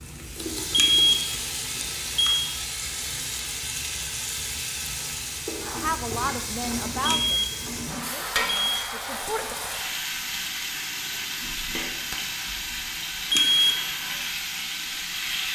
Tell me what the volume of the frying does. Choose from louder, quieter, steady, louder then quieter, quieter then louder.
steady.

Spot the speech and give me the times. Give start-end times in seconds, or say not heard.
5.8-9.6.